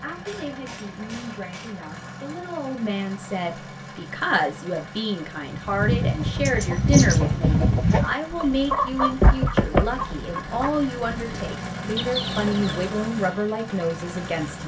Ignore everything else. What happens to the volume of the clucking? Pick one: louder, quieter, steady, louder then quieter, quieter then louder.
quieter.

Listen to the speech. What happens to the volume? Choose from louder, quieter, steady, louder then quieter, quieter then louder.
louder.